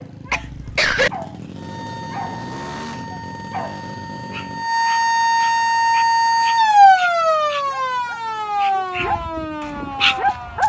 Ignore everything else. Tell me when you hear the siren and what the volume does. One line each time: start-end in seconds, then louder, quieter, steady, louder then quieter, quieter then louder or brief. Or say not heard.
1.6-10.6 louder then quieter.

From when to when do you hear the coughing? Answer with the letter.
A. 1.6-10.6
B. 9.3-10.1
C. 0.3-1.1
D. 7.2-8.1
C.